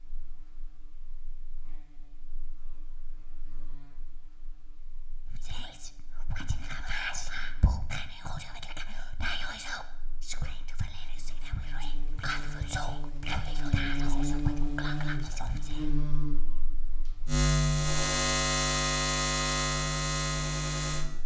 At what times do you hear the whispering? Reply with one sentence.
The whispering can be heard from 5.2 to 15.8 s.